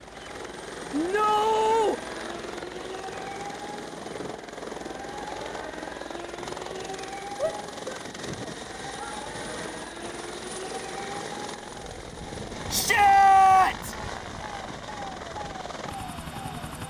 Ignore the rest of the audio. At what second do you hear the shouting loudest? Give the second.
13 s.